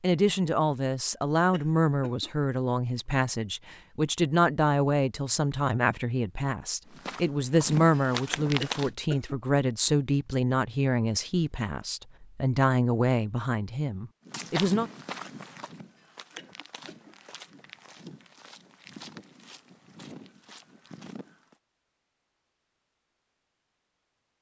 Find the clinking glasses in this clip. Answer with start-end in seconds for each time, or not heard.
not heard.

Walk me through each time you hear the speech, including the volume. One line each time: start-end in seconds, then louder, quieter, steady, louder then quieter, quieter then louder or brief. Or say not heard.
0.0-14.9 steady.